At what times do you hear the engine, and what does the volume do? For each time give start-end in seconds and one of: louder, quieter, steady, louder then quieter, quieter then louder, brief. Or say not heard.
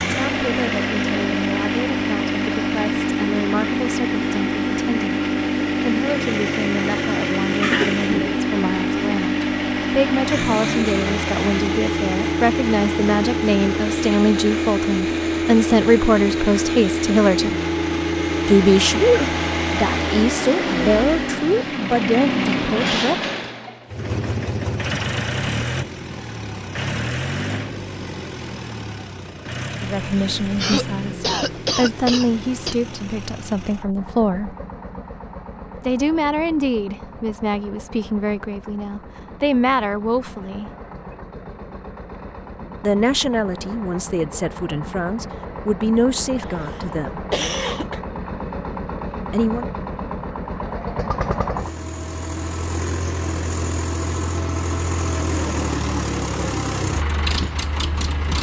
0.0-58.3 quieter then louder.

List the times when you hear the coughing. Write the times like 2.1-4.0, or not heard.
7.6-8.4, 30.6-32.8, 47.0-48.0.